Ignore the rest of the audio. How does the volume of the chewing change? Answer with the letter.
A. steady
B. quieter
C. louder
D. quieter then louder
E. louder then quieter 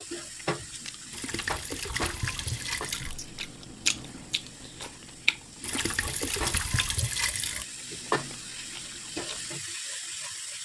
E.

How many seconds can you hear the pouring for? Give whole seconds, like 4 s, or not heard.
4 s.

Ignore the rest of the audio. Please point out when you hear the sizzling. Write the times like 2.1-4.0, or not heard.
0.0-10.6.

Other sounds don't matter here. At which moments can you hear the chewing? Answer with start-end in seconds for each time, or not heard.
0.1-9.6.